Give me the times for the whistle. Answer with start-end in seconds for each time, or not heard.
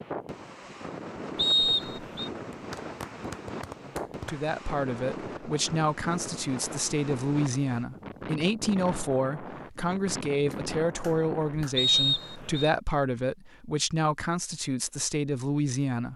1.4-2.3, 11.8-12.7.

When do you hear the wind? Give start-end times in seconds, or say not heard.
0.0-11.7.